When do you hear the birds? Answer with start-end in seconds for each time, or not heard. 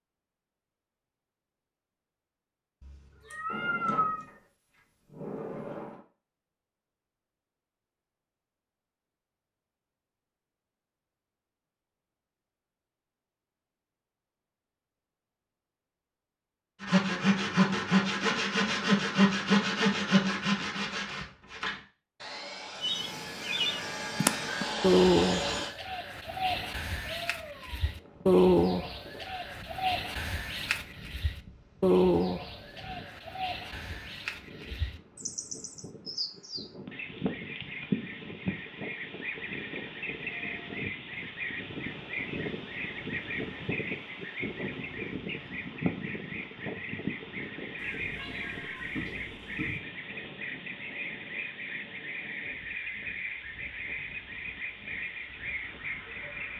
22.8-56.5.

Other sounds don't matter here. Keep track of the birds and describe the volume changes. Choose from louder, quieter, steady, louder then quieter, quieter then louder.
quieter.